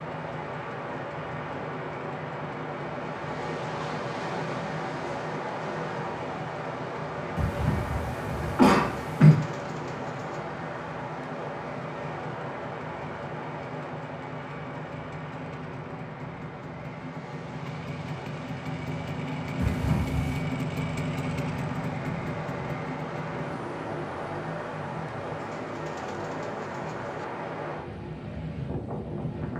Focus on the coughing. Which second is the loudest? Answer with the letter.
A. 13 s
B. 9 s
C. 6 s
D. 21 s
B.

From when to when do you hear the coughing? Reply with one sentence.
The coughing can be heard from 7.3 to 9.3 s and from 19.6 to 20.2 s.